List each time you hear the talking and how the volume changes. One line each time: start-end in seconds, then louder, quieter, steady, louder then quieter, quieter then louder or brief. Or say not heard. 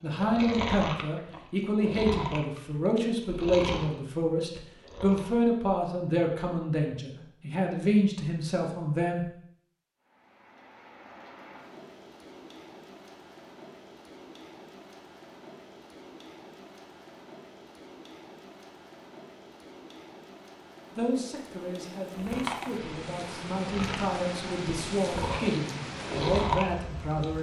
0.0-9.2 steady
20.9-27.3 louder.